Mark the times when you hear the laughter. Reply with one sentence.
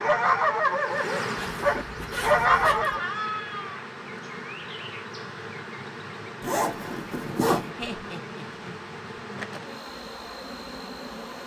You can hear the laughter from 2.4 to 3.8 s and from 7.8 to 8.9 s.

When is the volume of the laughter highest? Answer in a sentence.
The volume of the laughter peaks at 3 seconds.